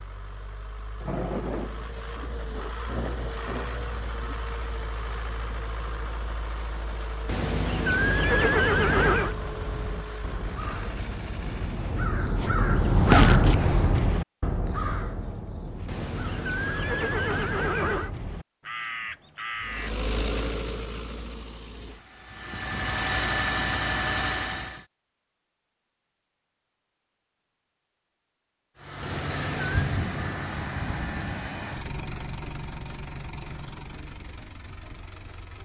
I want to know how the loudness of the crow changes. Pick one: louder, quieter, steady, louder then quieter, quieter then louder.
louder then quieter.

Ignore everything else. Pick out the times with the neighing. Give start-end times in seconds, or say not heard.
7.2-9.3, 15.8-18.1, 29.0-29.9.